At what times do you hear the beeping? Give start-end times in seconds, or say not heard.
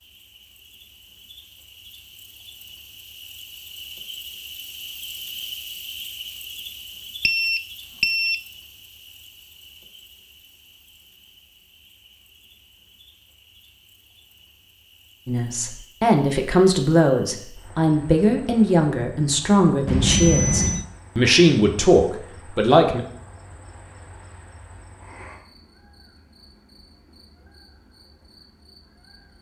7.2-8.4, 19.9-20.9.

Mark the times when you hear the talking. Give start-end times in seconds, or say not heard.
15.2-23.0.